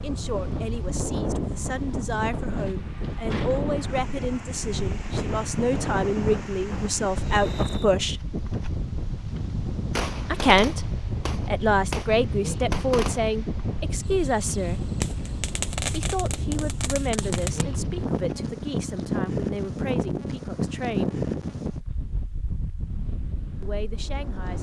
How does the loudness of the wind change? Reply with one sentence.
The loudness of the wind stays about the same.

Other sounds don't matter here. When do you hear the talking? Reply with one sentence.
You can hear the talking from 0.0 to 8.2 s, from 10.3 to 14.8 s, from 15.9 to 21.2 s and from 23.6 to 24.5 s.